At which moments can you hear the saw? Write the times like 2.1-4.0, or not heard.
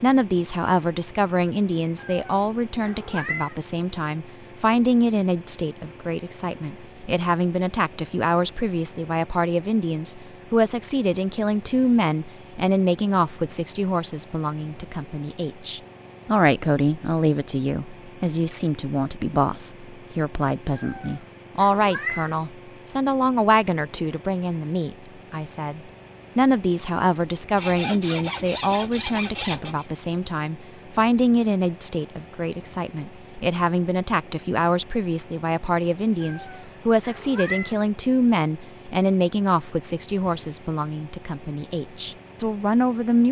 27.6-29.9.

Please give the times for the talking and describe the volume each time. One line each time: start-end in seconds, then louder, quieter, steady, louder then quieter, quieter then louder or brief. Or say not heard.
0.0-43.2 steady.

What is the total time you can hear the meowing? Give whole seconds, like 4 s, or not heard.
5 s.